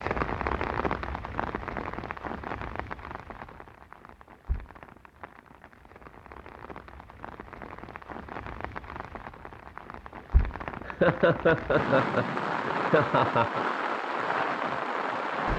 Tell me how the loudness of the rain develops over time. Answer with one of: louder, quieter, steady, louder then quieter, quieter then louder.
quieter then louder.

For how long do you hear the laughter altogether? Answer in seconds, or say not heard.
3 s.